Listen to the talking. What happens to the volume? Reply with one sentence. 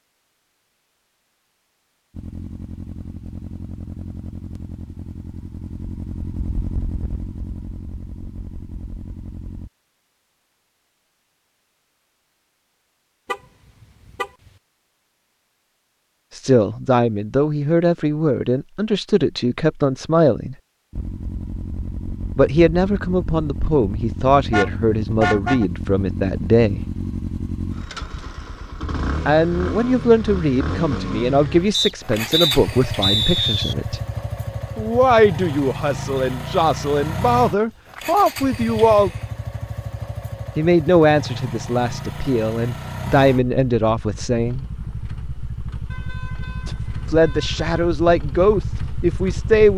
The volume of the talking stays about the same.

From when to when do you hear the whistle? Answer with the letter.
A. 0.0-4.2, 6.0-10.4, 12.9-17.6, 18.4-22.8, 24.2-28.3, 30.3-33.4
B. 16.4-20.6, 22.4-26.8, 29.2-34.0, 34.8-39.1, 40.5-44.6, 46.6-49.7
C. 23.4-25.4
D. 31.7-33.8
D.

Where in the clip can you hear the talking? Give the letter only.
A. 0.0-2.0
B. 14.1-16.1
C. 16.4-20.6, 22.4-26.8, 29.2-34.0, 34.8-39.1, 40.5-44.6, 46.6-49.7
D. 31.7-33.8
C.